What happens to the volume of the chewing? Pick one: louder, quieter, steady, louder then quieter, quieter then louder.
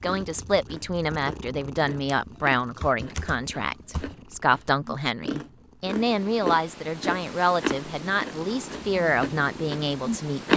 louder then quieter.